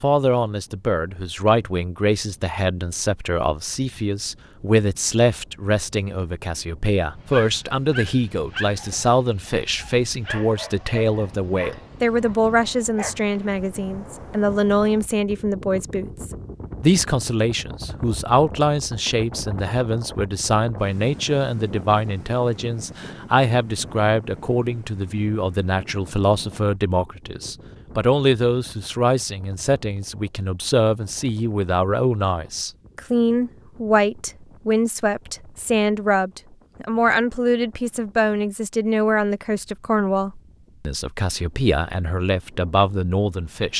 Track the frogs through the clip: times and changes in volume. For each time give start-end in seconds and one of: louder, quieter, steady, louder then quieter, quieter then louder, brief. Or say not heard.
not heard.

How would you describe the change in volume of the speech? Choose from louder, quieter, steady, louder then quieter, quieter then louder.
steady.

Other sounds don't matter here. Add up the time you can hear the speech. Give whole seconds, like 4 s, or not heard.
44 s.